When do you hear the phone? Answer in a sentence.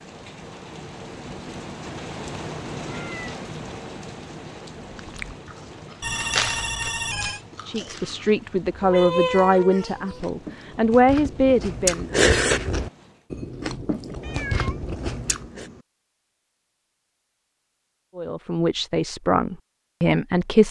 The phone can be heard from 6.0 to 7.4 s.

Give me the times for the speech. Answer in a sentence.
You can hear the speech from 7.7 to 12.2 s and from 18.1 to 20.6 s.